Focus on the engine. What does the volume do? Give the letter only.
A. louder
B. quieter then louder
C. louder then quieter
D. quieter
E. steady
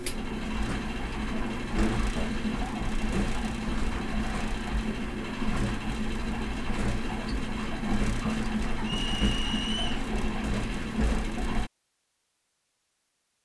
E.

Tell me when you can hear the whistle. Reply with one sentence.
The whistle can be heard from 8.8 to 10.0 s.